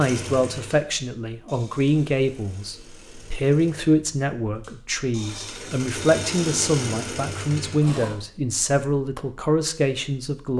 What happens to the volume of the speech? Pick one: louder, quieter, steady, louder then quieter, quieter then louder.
steady.